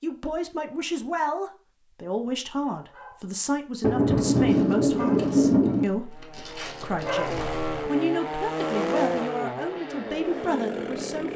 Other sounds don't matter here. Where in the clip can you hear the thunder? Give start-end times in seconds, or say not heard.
3.8-5.8.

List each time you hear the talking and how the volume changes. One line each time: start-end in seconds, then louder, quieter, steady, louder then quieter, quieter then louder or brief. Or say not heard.
0.0-11.3 steady.